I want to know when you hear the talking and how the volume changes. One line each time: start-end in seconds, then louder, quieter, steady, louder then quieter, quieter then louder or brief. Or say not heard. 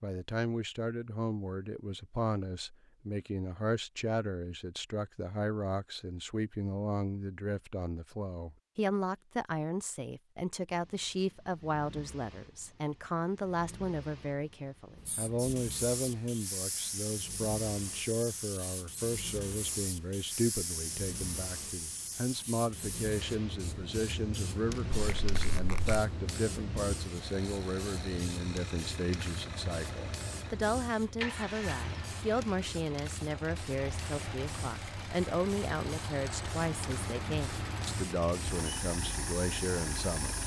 0.0-40.4 steady.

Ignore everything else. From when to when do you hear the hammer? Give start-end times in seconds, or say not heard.
not heard.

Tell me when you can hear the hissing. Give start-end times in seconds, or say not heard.
14.9-40.4.